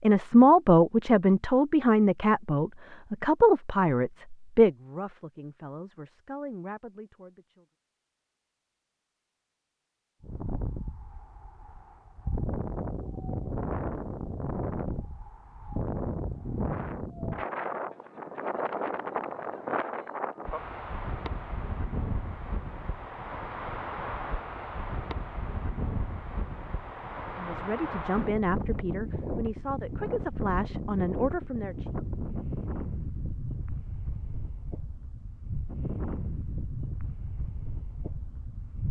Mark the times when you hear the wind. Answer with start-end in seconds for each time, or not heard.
10.2-38.8.